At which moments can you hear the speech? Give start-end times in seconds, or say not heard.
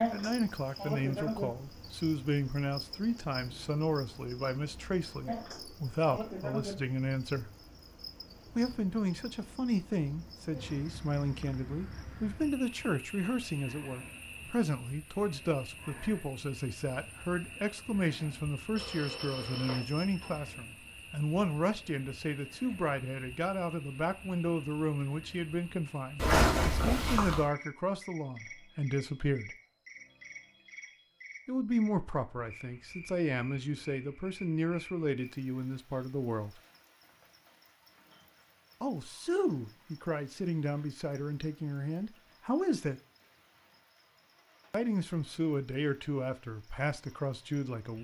0.1-7.5, 8.6-29.6, 31.4-36.6, 38.8-43.0, 44.7-47.9.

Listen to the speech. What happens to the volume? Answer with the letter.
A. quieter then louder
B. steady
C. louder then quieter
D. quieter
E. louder
B.